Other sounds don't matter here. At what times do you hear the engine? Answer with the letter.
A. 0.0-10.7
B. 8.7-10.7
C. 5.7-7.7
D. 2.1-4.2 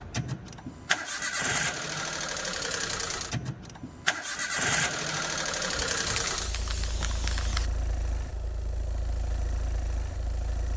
A.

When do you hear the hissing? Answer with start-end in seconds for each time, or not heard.
5.7-7.7.